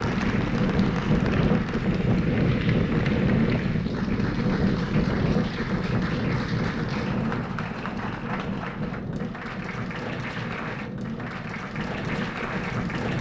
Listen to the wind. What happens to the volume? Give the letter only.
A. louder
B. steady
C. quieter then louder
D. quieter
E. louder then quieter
D.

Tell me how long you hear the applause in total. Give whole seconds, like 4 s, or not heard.
13 s.